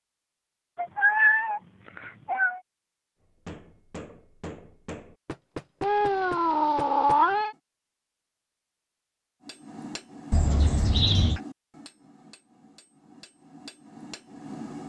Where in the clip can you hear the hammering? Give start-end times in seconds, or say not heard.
3.2-7.5, 9.4-14.8.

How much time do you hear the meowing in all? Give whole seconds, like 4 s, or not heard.
5 s.